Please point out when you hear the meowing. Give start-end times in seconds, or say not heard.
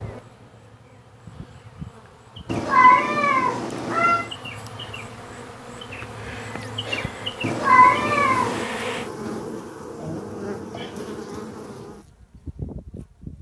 2.5-4.3, 7.4-8.7.